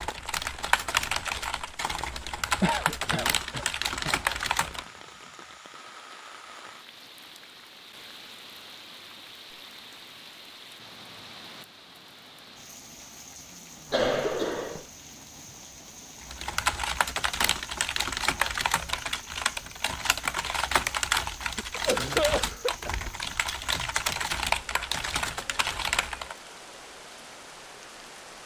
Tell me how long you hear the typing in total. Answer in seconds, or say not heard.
15 s.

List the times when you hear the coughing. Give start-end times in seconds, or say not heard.
2.6-4.2, 13.9-14.8, 21.6-22.9.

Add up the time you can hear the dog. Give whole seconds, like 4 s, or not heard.
not heard.